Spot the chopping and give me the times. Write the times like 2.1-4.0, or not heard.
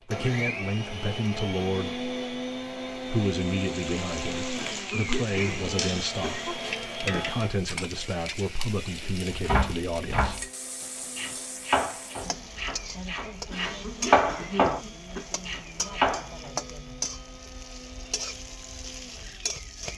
9.3-16.5.